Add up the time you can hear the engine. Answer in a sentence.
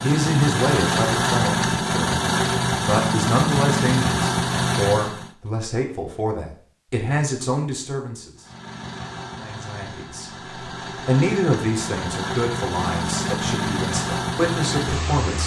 The engine can be heard for 12 seconds in total.